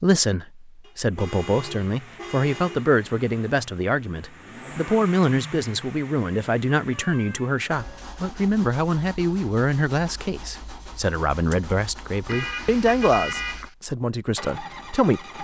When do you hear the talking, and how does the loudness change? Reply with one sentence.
The talking can be heard from 0.0 to 15.2 s, at a steady volume.